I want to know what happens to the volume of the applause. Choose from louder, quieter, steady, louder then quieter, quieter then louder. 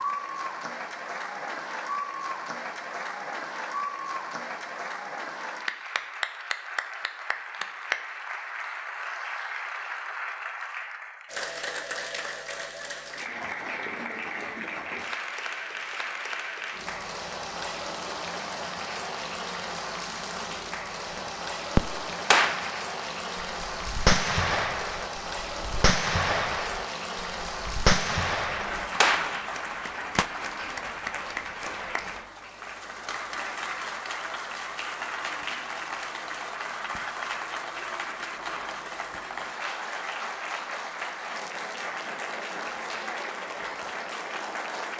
steady.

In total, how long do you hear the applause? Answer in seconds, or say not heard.
45 s.